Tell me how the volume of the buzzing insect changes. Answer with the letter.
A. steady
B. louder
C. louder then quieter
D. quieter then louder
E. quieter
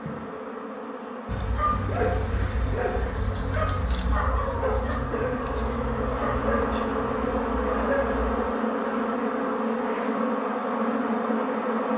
B.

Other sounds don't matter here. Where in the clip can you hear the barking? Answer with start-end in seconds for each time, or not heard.
1.2-8.4.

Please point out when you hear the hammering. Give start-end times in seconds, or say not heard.
not heard.